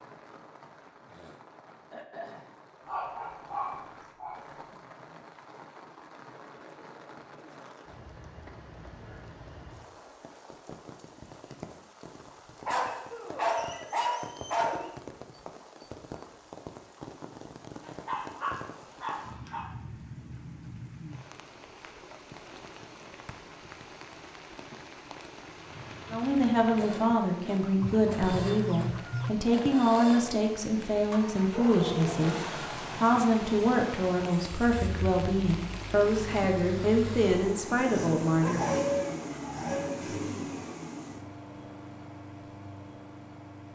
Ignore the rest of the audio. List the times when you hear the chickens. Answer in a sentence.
You can hear the chickens from 27.8 to 29.4 s.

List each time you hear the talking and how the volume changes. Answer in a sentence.
You can hear the talking from 26.1 to 38.8 s, at a steady volume.